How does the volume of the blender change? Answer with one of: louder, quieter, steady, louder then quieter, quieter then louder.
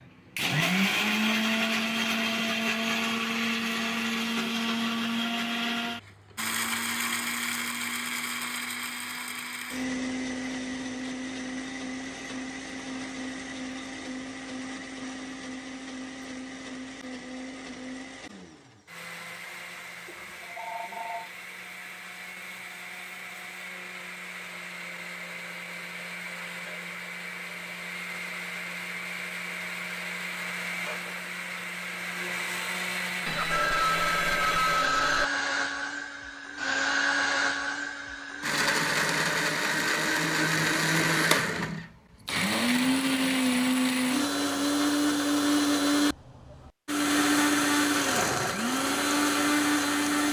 quieter then louder.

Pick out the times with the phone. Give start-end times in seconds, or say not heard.
20.4-21.3, 33.2-35.2.